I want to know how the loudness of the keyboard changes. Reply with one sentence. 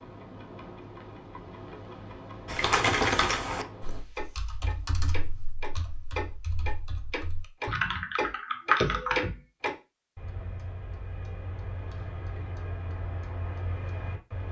The loudness of the keyboard goes down, then up.